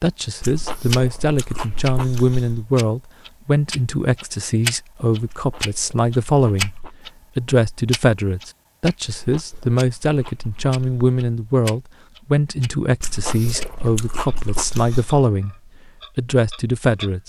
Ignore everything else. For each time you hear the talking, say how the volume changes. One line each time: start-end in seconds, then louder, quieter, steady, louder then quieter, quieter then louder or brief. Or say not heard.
0.0-6.8 steady
7.3-15.6 steady
16.1-17.2 brief.